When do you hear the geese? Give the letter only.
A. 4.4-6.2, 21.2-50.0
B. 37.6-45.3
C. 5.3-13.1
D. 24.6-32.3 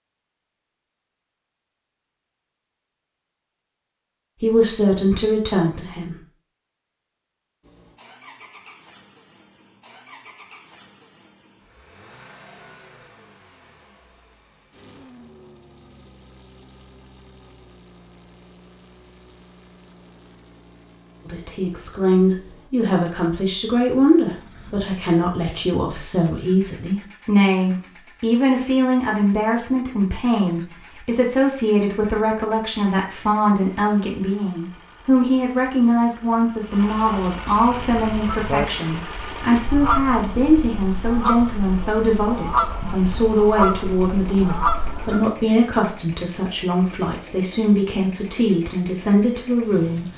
B.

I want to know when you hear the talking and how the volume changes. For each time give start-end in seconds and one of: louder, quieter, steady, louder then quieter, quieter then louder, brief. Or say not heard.
4.4-6.2 brief
21.2-50.0 steady.